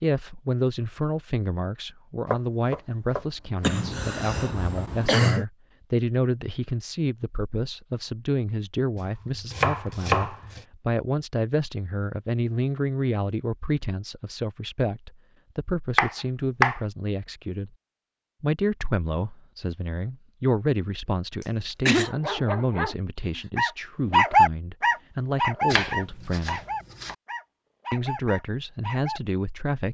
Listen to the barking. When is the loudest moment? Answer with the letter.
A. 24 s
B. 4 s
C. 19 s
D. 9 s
A.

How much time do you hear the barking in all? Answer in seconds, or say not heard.
7 s.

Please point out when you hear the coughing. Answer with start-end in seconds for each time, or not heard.
3.6-5.5, 21.4-22.1.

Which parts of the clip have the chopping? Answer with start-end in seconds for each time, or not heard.
2.3-3.8, 8.9-10.7, 15.9-16.8, 25.7-27.1.